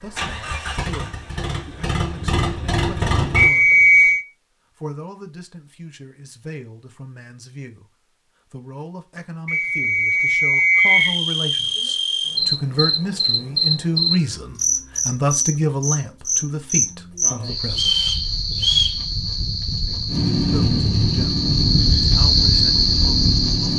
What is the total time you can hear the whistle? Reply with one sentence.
The whistle can be heard for 4 seconds in total.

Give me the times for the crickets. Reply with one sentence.
You can hear the crickets from 10.8 to 23.7 s.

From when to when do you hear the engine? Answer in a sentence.
You can hear the engine from 0.0 to 3.5 s and from 20.1 to 23.7 s.